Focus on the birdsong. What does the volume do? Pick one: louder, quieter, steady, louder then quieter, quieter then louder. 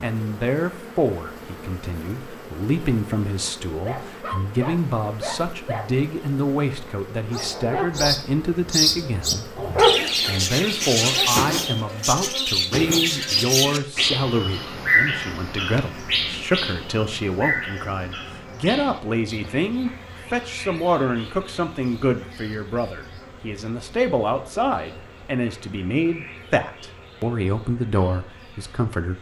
quieter.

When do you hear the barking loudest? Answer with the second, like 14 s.
10 s.